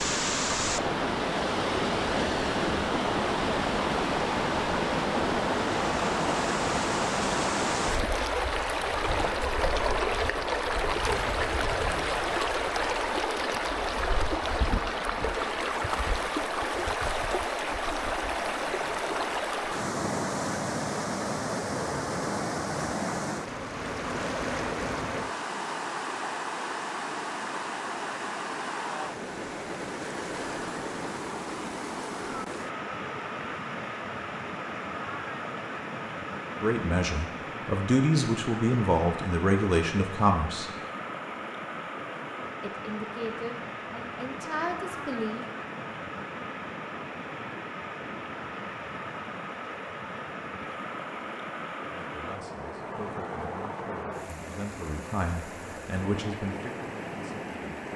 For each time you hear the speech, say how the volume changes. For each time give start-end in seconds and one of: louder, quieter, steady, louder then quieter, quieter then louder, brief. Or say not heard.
36.6-40.7 louder
42.6-45.5 brief
52.0-57.9 louder then quieter.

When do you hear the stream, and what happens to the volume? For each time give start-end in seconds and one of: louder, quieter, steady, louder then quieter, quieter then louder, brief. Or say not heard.
0.0-57.9 quieter.